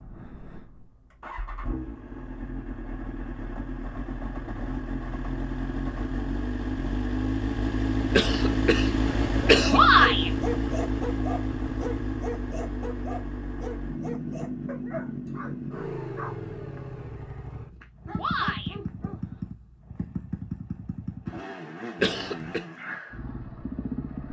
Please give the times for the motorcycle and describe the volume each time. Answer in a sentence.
You can hear the motorcycle from 0.0 to 24.2 s, getting louder then quieter.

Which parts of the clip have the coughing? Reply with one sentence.
The coughing can be heard from 8.1 to 9.9 s and from 22.0 to 22.6 s.